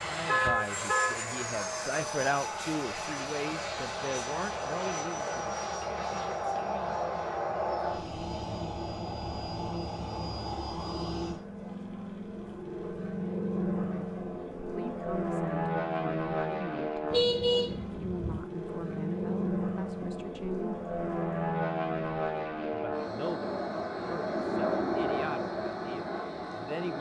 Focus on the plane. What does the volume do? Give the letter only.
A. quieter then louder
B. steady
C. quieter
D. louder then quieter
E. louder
B.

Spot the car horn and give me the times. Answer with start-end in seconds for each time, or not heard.
0.2-1.1, 17.1-18.4.